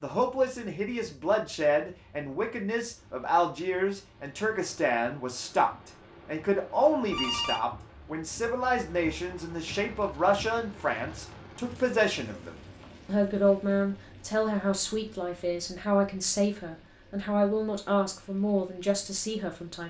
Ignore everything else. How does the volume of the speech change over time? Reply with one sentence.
The volume of the speech stays about the same.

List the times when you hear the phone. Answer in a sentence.
The phone can be heard from 7.1 to 7.7 s.